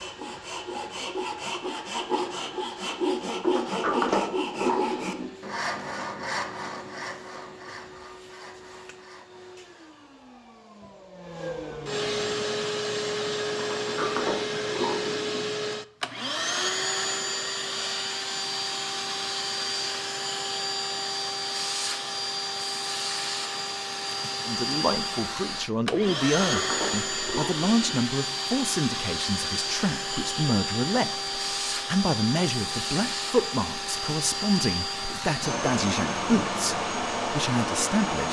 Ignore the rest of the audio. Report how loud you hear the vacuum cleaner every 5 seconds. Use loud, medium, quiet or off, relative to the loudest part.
quiet, quiet, loud, loud, loud, loud, loud, loud.